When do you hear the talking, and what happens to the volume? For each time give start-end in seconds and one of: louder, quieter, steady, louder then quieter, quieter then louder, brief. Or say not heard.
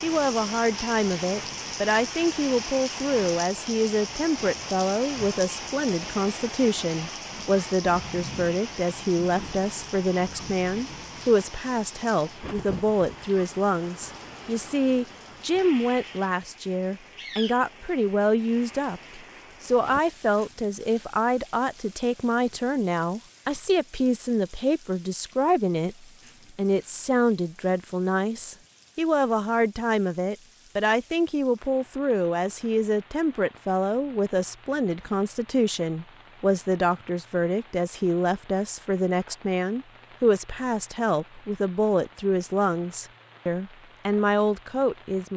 0.0-45.3 steady.